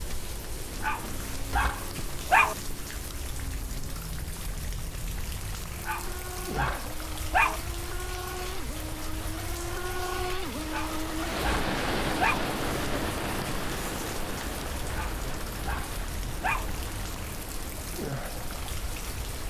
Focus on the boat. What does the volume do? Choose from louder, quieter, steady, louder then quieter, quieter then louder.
louder then quieter.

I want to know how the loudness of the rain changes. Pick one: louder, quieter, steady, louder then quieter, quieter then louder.
steady.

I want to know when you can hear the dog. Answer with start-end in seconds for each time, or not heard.
0.8-2.5, 5.8-7.6, 10.7-12.4, 14.9-16.6.